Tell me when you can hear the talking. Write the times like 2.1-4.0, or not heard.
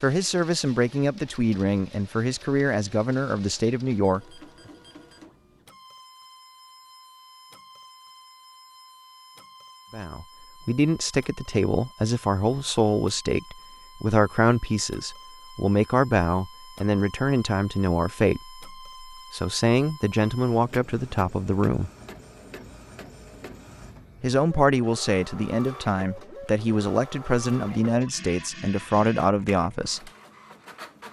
0.0-4.2, 9.9-21.9, 24.2-30.1.